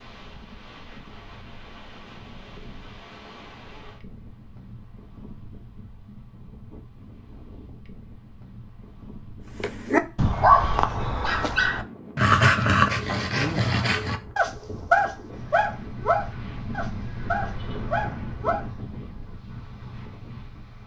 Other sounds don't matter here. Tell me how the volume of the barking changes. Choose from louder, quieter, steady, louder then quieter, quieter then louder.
quieter.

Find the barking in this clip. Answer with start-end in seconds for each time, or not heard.
9.6-18.6.